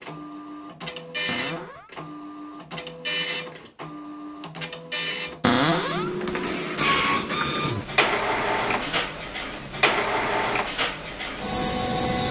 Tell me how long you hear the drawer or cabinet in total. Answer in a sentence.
The drawer or cabinet can be heard for 2 seconds in total.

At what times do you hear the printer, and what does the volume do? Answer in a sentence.
The printer can be heard from 0.0 to 12.2 s, at a steady volume.